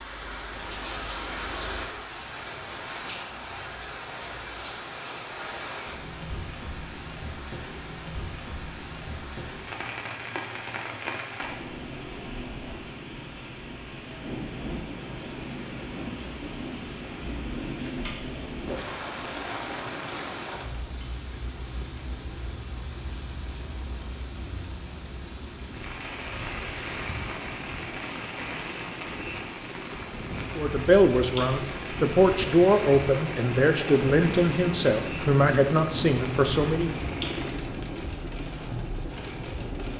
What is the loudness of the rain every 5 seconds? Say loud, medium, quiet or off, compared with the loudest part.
loud, loud, loud, loud, medium, loud, loud, loud.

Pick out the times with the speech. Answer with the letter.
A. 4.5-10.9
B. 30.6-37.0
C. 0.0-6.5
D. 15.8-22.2
B.